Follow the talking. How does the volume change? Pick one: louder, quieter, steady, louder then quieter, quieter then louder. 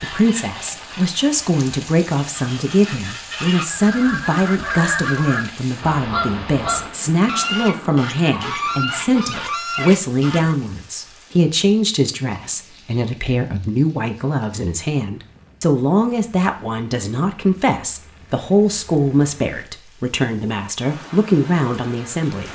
steady.